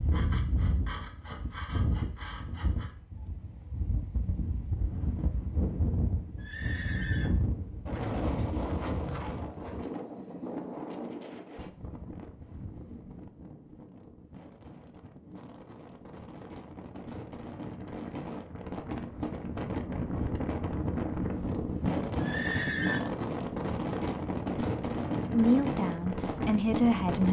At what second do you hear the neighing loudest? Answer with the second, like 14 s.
23 s.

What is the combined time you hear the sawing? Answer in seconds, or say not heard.
3 s.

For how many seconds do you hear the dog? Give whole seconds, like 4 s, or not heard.
not heard.